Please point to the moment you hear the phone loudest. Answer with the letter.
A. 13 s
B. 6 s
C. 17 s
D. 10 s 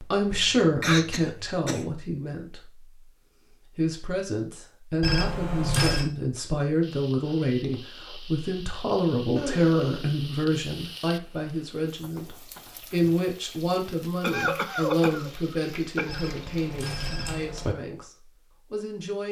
B.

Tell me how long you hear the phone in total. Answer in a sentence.
The phone can be heard for 3 seconds in total.